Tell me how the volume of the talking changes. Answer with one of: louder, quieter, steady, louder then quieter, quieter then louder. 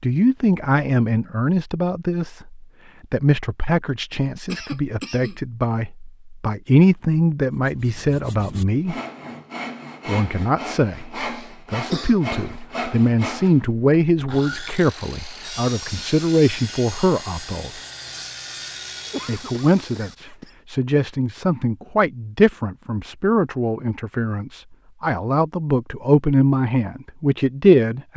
steady.